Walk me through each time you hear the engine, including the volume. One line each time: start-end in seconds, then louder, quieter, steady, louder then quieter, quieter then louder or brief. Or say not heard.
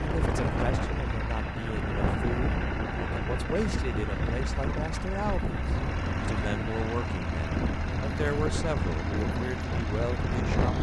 0.0-10.7 steady.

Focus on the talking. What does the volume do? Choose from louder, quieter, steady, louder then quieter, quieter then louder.
steady.